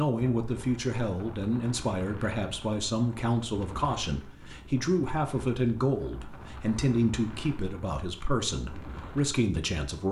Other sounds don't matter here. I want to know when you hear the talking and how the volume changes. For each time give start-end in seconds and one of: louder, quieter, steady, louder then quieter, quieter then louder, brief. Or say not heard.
0.0-10.0 steady.